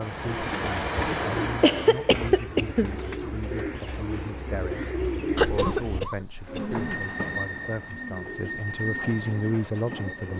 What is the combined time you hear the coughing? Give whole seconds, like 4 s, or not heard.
4 s.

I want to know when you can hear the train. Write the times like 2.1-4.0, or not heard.
0.0-2.0, 6.4-10.3.